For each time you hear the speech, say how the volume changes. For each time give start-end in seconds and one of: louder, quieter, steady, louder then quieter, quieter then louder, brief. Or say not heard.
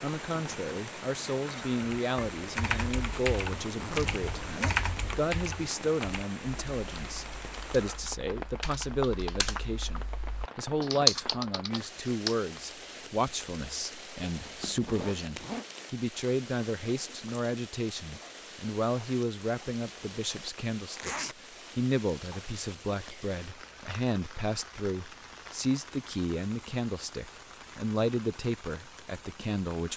0.0-29.9 steady.